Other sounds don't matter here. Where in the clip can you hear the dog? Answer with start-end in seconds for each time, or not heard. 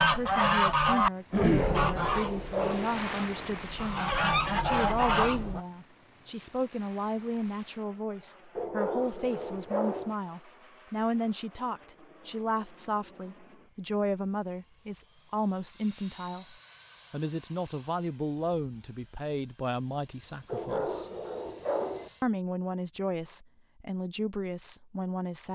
1.4-3.0, 8.6-10.2, 20.4-22.1.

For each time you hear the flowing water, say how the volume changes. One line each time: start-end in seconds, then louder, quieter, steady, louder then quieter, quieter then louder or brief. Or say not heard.
not heard.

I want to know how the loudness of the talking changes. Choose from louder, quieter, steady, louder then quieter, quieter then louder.
steady.